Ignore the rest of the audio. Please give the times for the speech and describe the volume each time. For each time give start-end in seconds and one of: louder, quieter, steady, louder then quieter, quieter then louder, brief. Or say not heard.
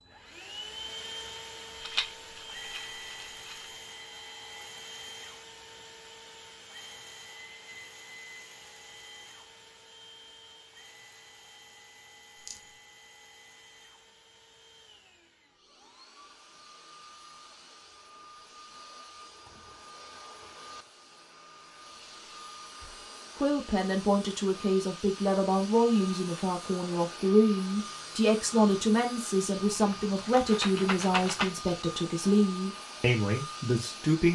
23.4-34.3 steady.